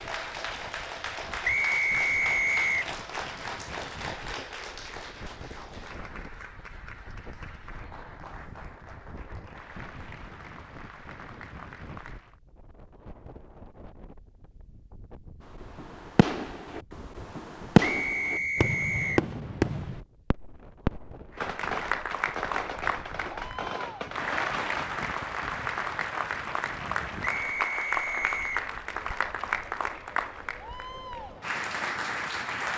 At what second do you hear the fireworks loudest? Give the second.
18 s.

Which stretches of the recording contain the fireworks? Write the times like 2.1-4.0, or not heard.
15.6-24.9.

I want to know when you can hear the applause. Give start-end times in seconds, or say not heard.
0.0-12.4, 21.3-32.7.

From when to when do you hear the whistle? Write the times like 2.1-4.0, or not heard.
1.4-2.9, 17.8-19.2, 27.2-28.7.